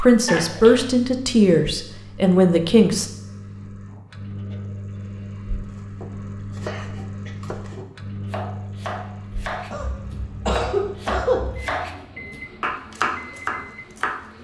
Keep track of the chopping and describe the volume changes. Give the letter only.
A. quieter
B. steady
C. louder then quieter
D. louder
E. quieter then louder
D.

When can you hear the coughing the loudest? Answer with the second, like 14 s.
11 s.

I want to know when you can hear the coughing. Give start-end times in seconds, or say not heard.
0.2-0.8, 6.7-7.3, 9.7-11.7.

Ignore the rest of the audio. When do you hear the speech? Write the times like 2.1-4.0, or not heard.
0.0-3.0.